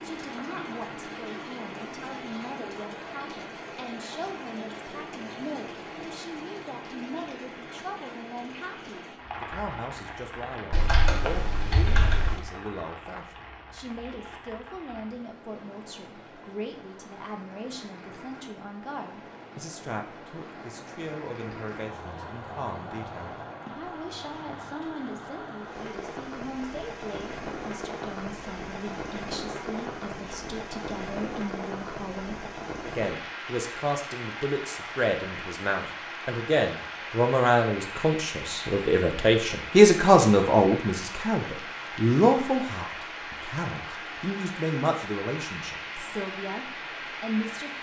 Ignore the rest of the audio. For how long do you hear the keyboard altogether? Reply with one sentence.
The keyboard can be heard for 2 seconds in total.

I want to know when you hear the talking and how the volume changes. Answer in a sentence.
You can hear the talking from 0.0 to 47.7 s, getting louder.